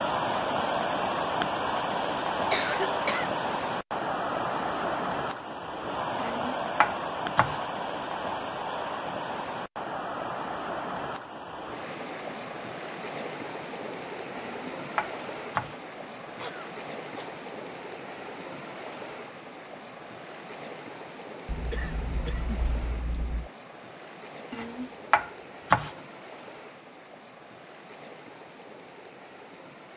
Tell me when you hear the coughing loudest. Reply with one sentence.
The loudest moment of the coughing is at 3 seconds.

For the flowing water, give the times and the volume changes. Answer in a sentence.
The flowing water can be heard from 0.0 to 29.9 s, getting quieter.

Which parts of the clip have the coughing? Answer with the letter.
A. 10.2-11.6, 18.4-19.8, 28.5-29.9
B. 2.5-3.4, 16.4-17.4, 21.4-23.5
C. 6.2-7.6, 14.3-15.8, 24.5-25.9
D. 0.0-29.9
B.